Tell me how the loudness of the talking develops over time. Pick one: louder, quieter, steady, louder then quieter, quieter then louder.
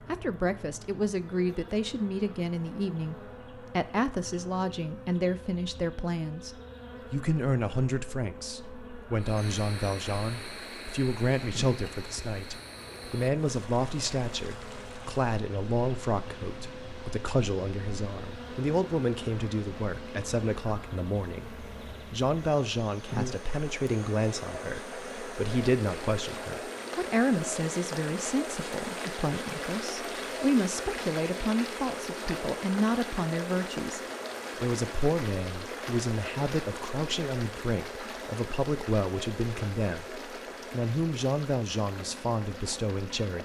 steady.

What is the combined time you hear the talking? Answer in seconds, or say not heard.
43 s.